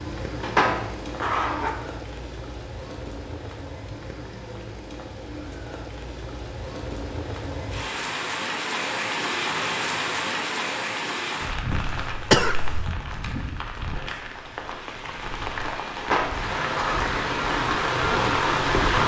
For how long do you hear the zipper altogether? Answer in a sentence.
The zipper can be heard for 2 seconds in total.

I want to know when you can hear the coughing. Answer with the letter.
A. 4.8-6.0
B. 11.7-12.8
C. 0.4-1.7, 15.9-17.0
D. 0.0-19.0
B.